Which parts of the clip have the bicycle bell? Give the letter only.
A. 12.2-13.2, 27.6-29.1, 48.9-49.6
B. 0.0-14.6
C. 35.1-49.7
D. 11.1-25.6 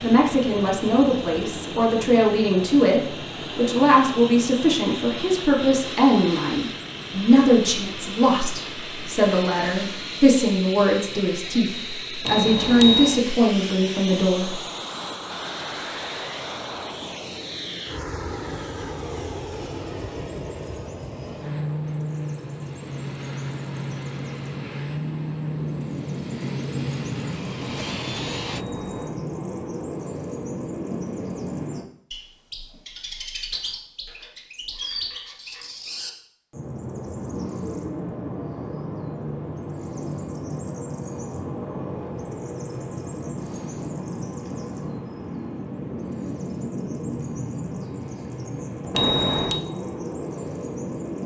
A.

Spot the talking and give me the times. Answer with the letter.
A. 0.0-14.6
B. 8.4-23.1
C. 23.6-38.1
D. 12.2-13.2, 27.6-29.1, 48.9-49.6
A.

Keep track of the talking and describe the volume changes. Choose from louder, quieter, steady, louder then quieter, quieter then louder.
steady.